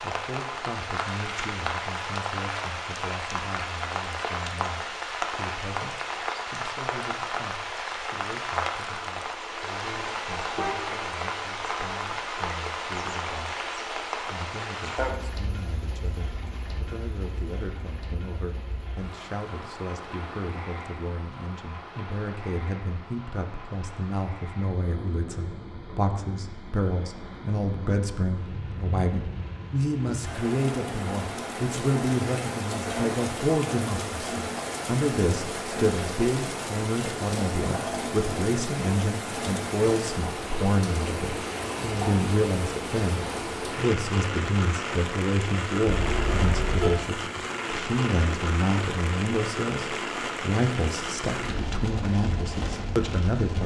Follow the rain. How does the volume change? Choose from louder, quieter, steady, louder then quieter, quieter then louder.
quieter then louder.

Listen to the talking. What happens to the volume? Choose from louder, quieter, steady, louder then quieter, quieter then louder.
louder.